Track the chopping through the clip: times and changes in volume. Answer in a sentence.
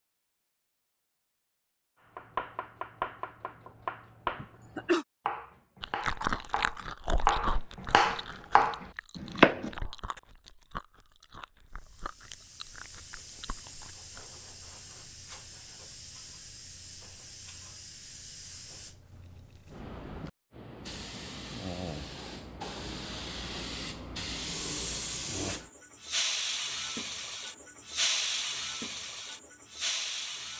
You can hear the chopping from 2.1 to 9.7 s, getting louder.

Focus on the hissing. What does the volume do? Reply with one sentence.
The loudness of the hissing goes up.